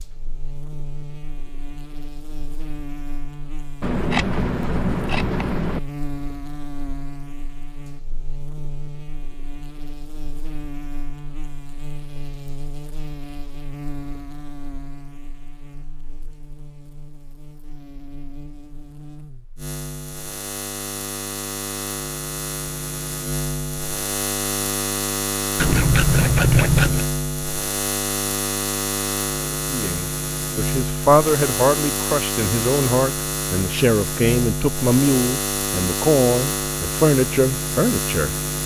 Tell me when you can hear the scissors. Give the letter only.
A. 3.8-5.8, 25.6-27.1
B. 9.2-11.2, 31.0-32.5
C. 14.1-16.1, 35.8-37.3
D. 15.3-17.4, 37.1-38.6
A.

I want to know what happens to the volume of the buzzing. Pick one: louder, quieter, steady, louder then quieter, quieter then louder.
louder.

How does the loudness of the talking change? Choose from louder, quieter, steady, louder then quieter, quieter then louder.
steady.